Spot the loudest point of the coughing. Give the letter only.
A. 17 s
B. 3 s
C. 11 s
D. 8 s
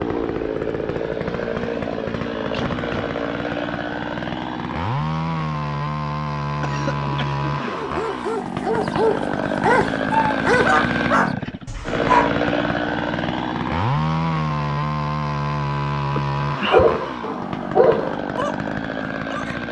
A.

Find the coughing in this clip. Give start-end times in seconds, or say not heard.
2.5-3.1, 6.6-8.0, 16.1-17.0.